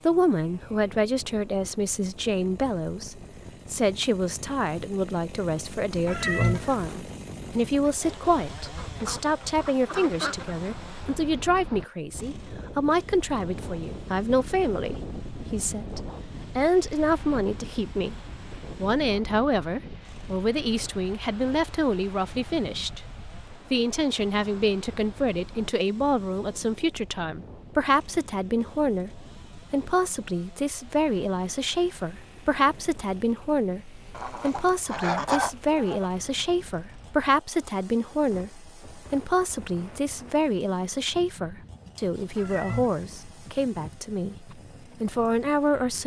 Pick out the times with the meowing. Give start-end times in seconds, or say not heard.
6.0-7.0, 42.4-43.2.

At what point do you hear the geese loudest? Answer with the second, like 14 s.
35 s.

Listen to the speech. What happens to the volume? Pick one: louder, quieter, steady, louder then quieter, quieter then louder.
steady.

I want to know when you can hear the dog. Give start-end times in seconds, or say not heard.
not heard.